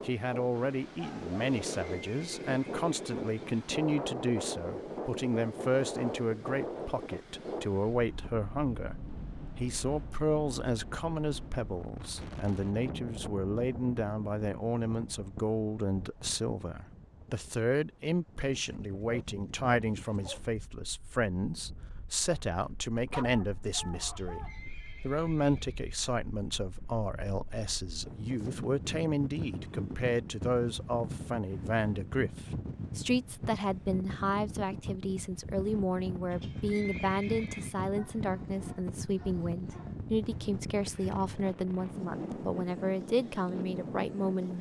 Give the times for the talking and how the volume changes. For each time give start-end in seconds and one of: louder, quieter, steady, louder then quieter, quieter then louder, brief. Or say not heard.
0.0-44.5 steady.